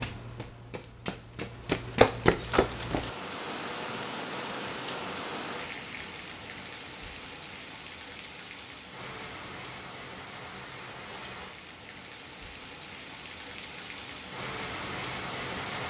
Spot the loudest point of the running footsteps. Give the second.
2 s.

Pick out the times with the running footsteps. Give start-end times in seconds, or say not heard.
0.0-3.1.